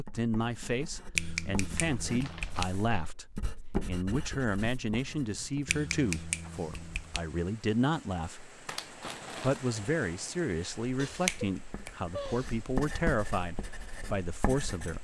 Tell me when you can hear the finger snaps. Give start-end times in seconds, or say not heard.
1.1-2.7, 5.7-7.2, 10.9-12.6.